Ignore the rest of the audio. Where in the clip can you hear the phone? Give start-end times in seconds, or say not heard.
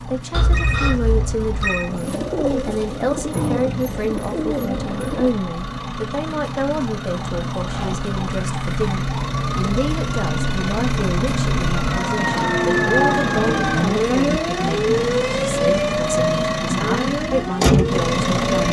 0.3-1.9.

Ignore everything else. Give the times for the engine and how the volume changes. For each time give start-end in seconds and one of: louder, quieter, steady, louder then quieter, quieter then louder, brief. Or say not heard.
0.0-18.6 louder.